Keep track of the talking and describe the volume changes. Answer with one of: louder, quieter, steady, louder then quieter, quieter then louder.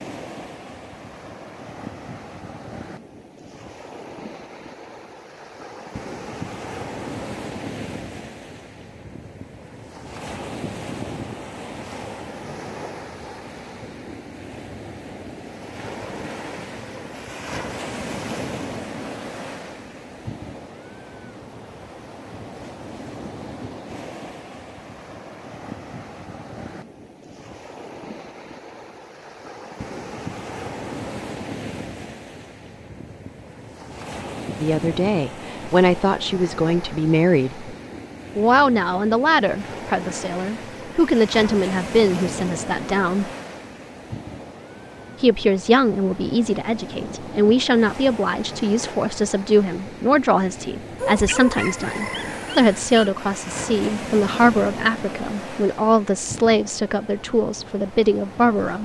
steady.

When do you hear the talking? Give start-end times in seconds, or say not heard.
34.6-37.7, 38.4-43.3, 45.2-58.7.